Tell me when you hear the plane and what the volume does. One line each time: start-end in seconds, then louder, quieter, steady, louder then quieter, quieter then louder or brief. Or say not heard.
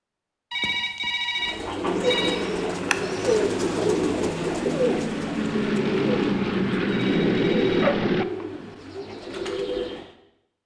1.8-8.2 louder.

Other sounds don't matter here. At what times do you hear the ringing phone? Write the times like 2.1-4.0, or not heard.
0.5-2.5, 6.8-7.9.